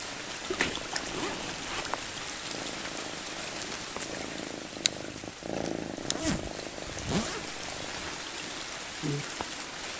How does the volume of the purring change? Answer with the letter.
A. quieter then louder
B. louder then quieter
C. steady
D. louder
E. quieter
B.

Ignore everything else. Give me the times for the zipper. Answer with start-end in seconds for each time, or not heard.
0.5-2.0, 6.0-8.1.